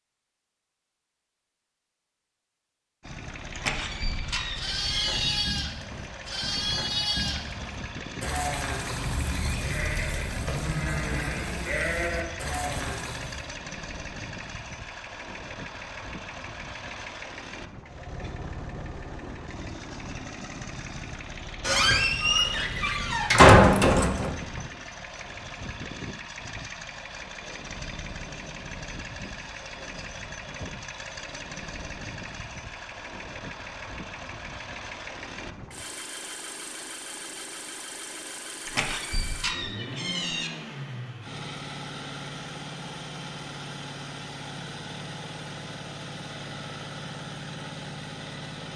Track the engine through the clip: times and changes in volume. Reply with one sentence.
The engine can be heard from 3.0 to 48.7 s, at a steady volume.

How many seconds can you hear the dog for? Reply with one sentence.
You can't hear the dog here.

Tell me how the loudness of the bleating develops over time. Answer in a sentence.
The volume of the bleating stays about the same.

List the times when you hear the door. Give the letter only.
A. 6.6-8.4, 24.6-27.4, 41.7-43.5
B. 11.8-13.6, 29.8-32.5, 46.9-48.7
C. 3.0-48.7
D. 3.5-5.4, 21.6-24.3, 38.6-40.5
D.